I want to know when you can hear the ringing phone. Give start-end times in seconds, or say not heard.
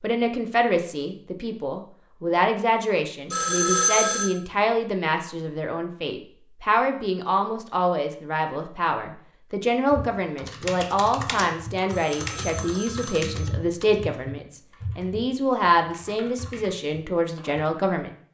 3.3-4.3, 11.9-13.6.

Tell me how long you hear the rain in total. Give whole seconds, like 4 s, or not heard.
not heard.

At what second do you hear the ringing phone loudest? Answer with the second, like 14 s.
4 s.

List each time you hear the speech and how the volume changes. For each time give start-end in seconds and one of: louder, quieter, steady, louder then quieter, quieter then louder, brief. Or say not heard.
0.0-18.1 steady.